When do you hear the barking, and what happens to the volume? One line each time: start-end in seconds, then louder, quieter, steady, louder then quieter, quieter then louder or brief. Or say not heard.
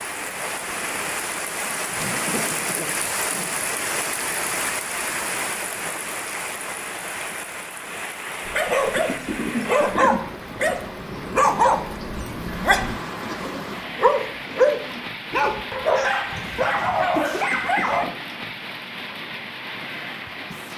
8.4-18.1 steady.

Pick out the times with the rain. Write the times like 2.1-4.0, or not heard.
0.0-20.7.